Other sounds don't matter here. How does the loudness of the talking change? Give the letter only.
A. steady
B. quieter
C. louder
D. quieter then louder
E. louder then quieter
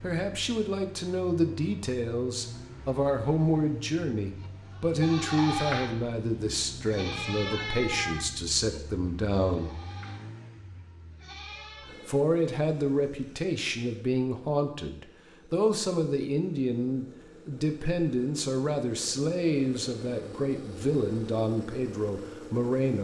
A.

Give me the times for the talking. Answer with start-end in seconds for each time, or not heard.
0.0-9.7, 12.1-23.0.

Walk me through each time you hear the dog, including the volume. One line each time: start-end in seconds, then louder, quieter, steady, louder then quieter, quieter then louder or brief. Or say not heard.
not heard.